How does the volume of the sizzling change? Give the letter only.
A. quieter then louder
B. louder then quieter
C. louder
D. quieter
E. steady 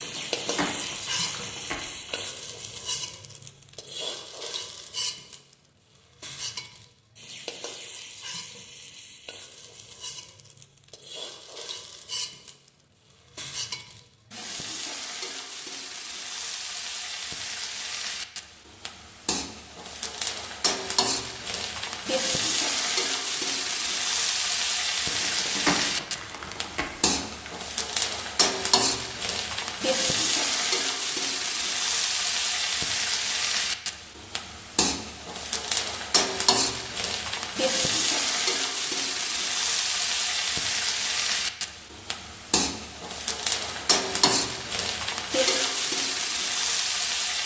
C.